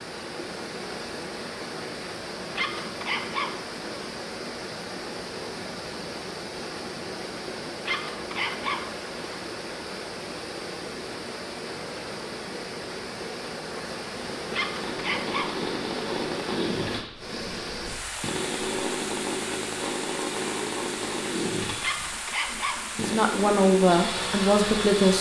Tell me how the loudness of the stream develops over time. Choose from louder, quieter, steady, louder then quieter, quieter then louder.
steady.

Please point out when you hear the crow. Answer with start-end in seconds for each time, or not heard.
not heard.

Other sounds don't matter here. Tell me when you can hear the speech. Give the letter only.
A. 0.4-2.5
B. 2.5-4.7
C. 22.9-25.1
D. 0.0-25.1
C.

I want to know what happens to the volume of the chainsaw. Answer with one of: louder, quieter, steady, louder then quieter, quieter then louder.
steady.